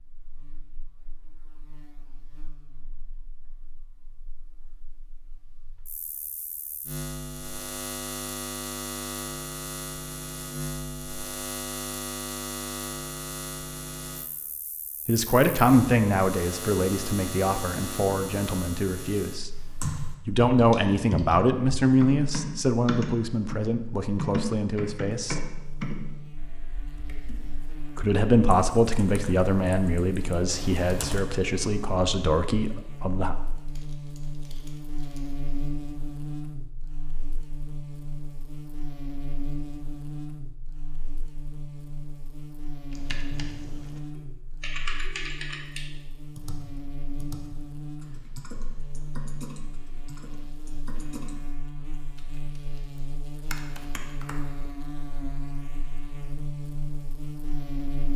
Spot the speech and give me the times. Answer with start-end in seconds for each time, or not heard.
15.1-19.6, 20.2-25.4, 27.9-33.4.